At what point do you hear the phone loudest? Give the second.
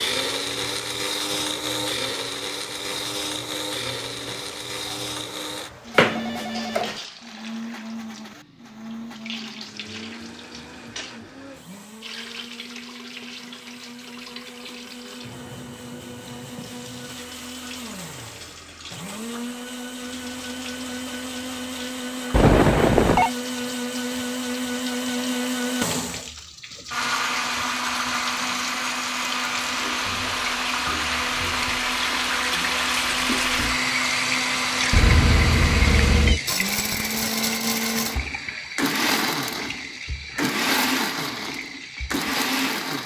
23 s.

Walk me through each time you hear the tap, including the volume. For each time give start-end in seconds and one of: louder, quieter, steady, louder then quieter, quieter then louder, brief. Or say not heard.
0.0-43.0 louder.